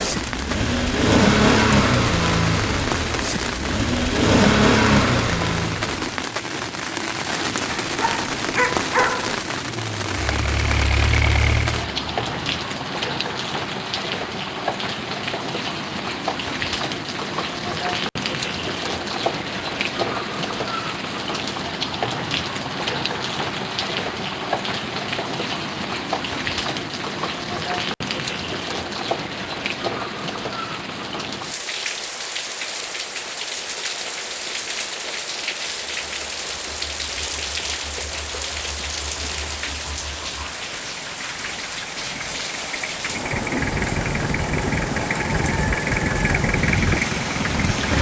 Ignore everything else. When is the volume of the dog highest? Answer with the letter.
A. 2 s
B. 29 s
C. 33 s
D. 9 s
D.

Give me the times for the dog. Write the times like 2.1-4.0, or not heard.
7.7-9.4.